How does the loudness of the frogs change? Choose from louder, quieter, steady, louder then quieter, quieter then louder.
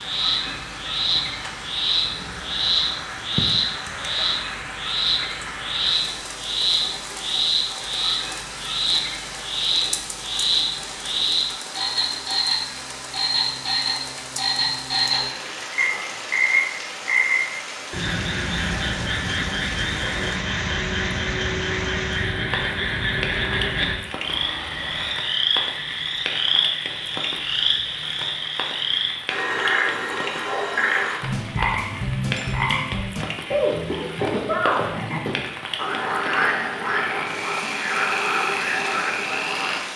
steady.